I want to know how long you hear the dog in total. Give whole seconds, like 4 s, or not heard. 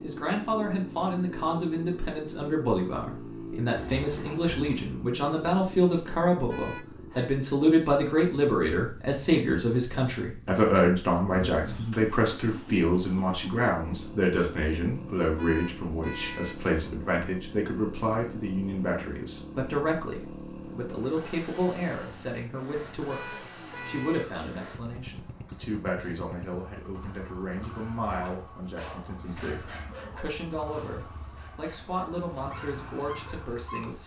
6 s.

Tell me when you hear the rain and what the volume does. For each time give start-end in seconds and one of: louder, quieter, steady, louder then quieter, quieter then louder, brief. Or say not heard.
not heard.